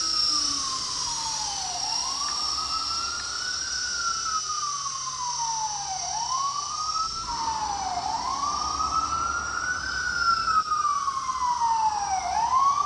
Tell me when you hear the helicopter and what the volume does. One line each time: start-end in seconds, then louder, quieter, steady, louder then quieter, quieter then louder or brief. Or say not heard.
0.0-12.8 quieter.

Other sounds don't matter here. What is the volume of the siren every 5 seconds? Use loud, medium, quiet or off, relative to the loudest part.
medium, medium, loud.